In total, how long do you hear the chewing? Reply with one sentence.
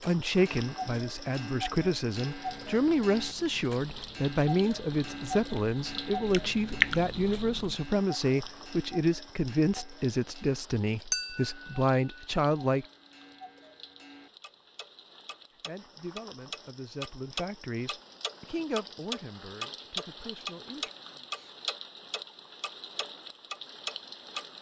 You can hear the chewing for 5 seconds altogether.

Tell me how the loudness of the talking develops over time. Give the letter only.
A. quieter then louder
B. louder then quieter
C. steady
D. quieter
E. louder
D.